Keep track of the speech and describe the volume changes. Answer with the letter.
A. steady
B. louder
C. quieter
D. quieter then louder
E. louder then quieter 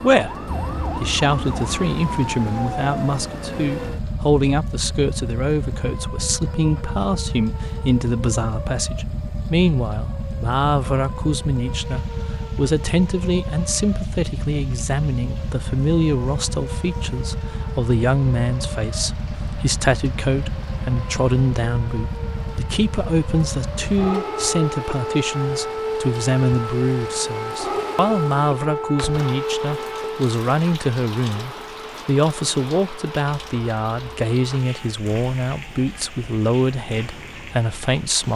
A.